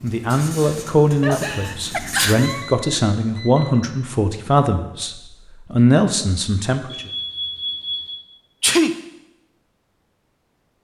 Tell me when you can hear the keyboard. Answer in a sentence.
The keyboard can't be heard in this clip.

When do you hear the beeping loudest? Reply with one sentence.
The volume of the beeping peaks at 8 seconds.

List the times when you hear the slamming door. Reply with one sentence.
The slamming door can't be heard in this clip.